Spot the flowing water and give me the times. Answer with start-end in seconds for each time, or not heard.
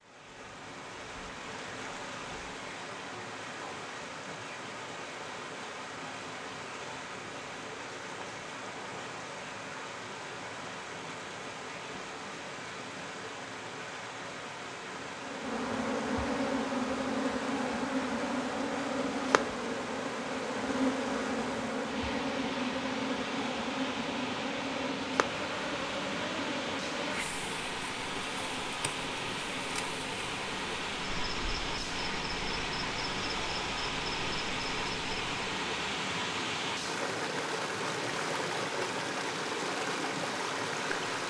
0.0-41.2.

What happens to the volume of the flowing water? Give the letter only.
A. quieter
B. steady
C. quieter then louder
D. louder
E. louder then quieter
D.